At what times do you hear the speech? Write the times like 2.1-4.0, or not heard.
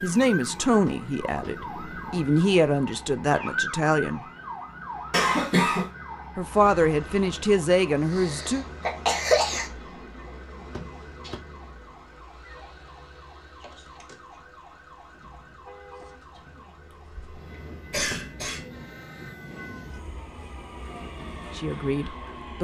0.0-4.2, 6.3-8.7, 21.5-22.5.